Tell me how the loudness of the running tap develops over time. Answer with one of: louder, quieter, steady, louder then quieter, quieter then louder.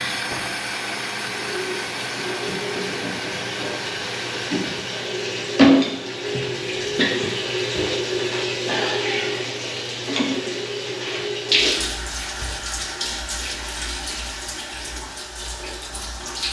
louder then quieter.